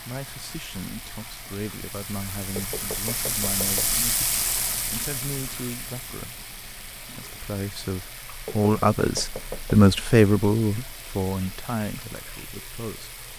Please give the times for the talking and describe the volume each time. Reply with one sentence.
You can hear the talking from 0.0 to 13.2 s, getting louder then quieter.